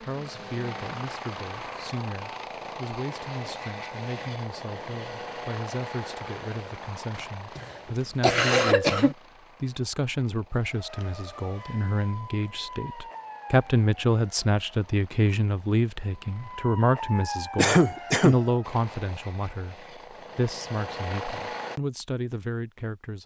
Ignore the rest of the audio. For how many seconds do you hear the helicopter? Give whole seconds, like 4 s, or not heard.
20 s.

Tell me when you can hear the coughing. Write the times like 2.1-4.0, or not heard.
7.2-9.2, 17.6-18.4.